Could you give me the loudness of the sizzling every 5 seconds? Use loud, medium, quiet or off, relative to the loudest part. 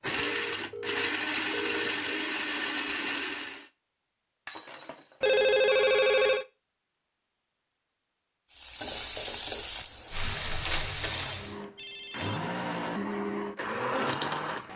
off, loud, loud.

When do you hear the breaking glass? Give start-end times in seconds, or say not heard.
4.5-5.2.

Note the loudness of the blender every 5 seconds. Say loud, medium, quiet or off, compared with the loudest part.
loud, off, loud.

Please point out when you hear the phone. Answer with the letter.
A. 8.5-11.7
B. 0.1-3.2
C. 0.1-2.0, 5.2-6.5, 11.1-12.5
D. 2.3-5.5
C.